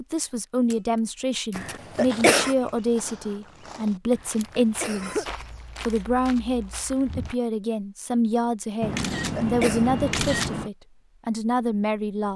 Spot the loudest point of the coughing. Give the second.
2 s.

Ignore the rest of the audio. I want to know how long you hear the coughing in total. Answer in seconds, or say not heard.
3 s.